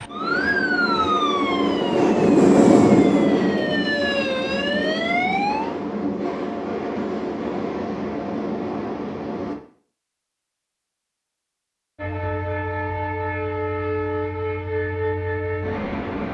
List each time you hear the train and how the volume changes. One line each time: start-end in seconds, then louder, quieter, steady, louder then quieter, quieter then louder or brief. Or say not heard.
0.0-9.6 louder then quieter
11.9-16.2 steady.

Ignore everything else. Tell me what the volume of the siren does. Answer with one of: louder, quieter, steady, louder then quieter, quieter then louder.
quieter then louder.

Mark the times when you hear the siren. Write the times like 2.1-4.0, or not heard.
0.0-5.8.